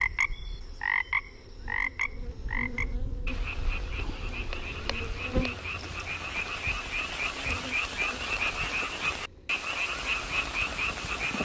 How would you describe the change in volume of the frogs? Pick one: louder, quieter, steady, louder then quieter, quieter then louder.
quieter then louder.